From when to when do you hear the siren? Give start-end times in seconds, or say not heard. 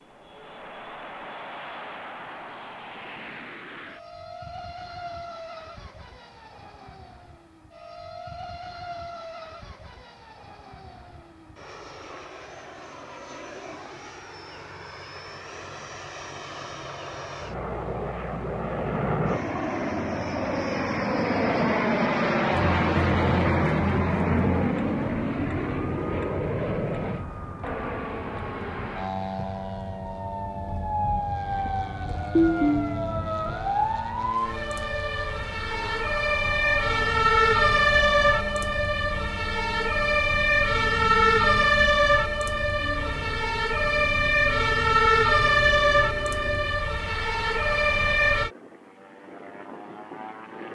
22.5-48.5.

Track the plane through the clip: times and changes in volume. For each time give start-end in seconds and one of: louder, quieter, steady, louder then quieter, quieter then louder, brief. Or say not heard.
0.0-50.6 louder then quieter.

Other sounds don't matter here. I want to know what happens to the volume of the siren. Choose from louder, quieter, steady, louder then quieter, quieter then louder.
louder.